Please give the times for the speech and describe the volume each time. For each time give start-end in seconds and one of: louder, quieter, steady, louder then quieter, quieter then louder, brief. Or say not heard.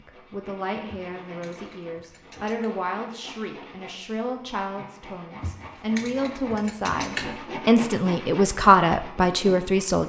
0.0-10.0 louder.